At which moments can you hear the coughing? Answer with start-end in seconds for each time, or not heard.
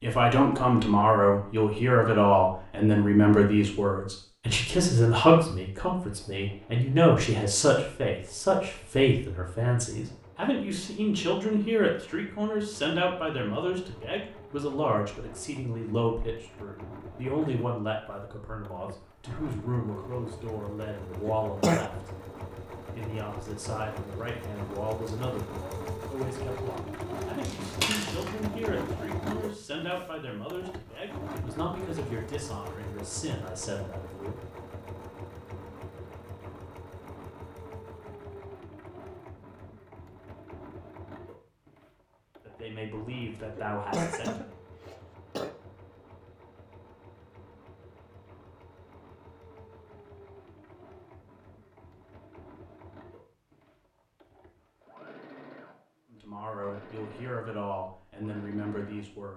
21.2-21.9, 43.5-45.5.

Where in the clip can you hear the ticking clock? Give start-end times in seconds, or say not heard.
not heard.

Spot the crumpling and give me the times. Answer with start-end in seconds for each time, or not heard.
27.4-28.3.